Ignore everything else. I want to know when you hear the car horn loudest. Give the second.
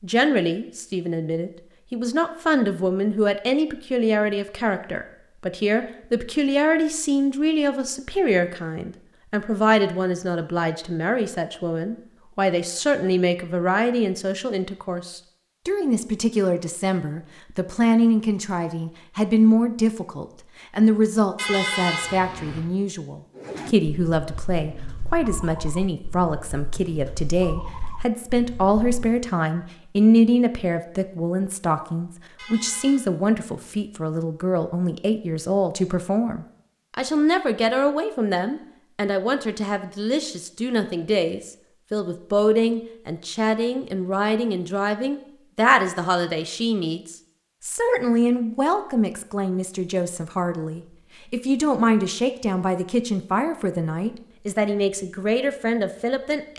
22 s.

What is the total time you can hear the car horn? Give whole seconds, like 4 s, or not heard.
2 s.